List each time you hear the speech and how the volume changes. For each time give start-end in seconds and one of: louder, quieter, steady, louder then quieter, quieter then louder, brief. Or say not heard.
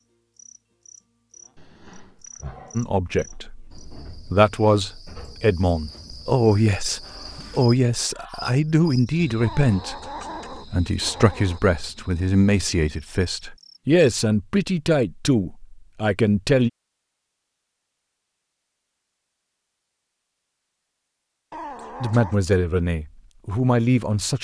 2.8-16.7 steady
22.0-24.3 brief.